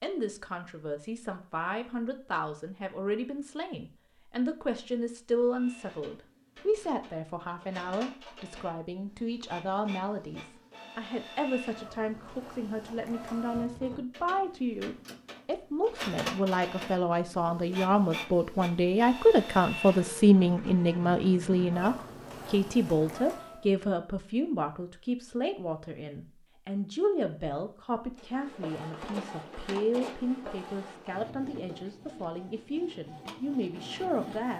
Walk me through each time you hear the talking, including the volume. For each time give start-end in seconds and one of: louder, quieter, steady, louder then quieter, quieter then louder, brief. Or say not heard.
0.0-34.5 louder then quieter.